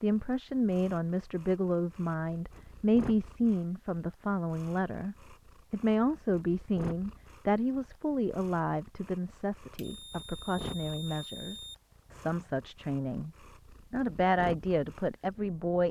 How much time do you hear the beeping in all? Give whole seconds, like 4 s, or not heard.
2 s.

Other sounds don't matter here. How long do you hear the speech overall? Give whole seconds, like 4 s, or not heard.
15 s.